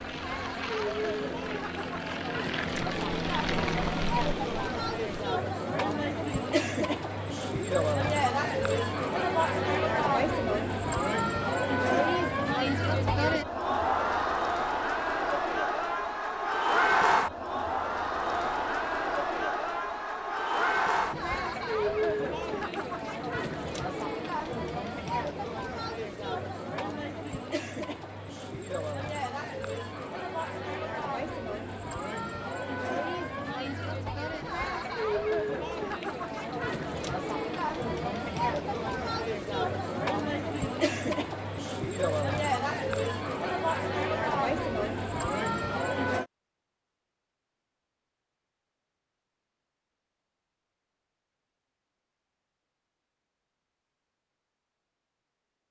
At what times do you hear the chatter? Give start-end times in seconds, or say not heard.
0.0-46.2.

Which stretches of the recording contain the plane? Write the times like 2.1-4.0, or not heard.
0.0-5.2.